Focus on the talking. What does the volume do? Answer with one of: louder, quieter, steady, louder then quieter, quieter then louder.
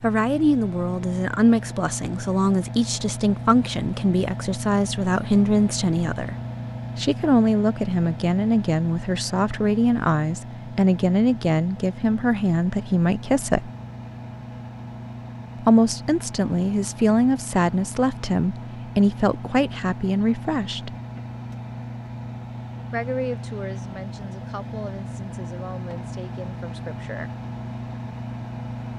quieter.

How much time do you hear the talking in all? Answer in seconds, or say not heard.
23 s.